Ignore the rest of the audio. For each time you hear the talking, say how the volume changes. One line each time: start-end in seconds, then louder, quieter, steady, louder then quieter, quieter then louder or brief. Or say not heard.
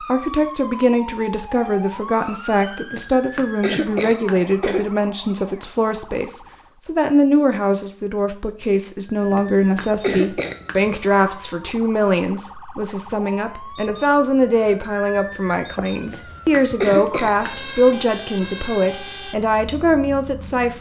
0.1-20.7 steady.